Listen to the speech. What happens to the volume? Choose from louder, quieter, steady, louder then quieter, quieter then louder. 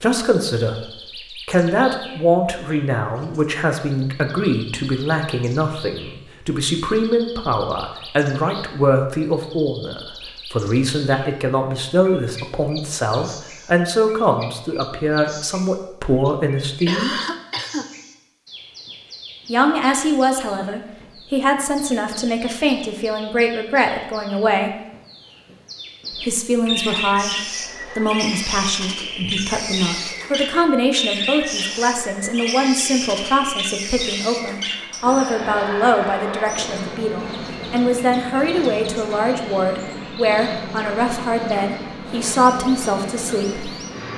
steady.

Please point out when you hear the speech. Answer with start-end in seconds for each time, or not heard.
0.0-17.1, 19.4-24.7, 26.1-43.7.